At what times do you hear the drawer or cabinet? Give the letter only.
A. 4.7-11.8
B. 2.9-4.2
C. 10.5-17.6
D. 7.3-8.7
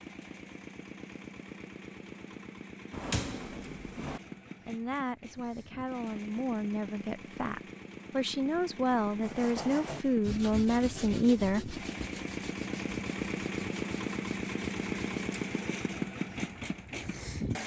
B.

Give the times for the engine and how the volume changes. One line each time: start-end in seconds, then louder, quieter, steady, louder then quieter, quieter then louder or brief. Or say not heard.
0.0-17.6 louder.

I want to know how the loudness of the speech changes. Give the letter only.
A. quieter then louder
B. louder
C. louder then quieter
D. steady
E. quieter
B.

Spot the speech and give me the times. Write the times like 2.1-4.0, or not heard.
4.7-11.8.